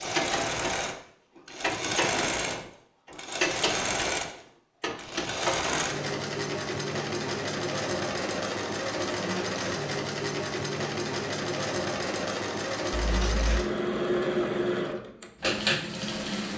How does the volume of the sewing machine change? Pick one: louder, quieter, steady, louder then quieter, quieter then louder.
steady.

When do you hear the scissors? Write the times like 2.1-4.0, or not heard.
12.9-13.6.